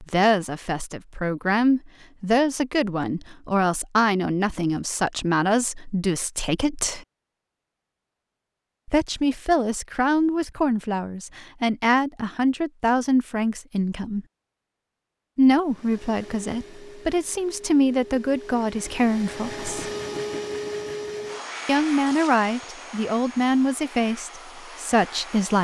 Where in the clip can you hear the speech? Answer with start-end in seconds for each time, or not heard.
0.0-7.0, 8.8-14.2, 15.3-19.9, 21.6-25.6.